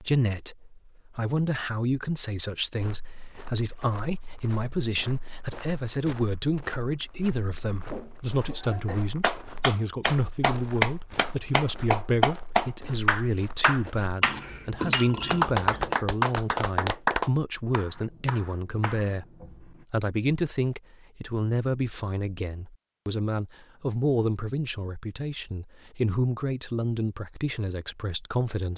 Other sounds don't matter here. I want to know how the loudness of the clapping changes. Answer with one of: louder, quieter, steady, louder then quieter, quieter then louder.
quieter.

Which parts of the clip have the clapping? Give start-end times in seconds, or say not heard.
9.2-19.9.